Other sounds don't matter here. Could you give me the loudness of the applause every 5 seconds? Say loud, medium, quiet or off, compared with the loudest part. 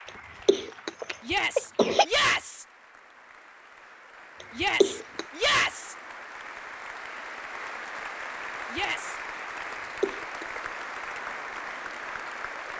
quiet, loud, loud.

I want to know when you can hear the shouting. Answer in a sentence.
You can hear the shouting from 1.2 to 2.6 s, from 4.5 to 6.0 s and from 8.7 to 9.2 s.